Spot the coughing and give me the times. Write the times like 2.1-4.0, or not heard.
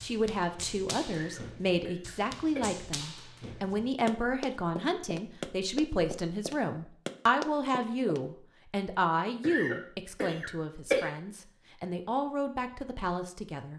1.1-2.8, 9.4-11.1.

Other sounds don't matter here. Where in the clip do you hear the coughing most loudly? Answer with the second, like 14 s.
11 s.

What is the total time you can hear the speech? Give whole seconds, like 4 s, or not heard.
14 s.